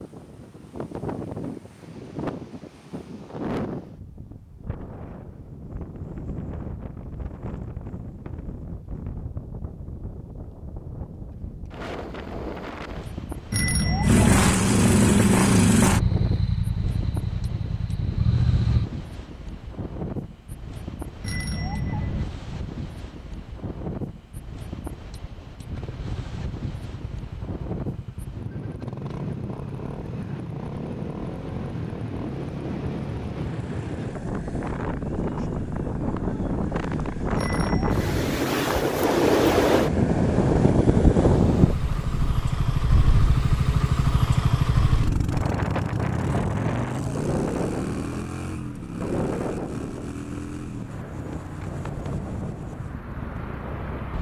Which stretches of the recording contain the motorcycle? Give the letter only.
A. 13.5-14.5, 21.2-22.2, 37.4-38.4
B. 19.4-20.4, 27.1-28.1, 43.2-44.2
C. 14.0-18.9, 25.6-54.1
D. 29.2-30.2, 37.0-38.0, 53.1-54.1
C.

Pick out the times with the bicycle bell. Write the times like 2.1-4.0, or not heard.
13.5-14.5, 21.2-22.2, 37.4-38.4.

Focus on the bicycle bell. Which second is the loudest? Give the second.
14 s.